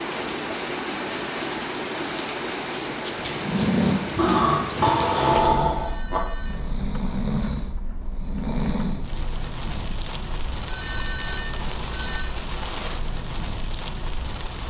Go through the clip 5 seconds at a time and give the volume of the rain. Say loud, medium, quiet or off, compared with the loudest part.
loud, medium, medium.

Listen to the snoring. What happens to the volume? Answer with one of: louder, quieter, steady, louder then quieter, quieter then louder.
quieter.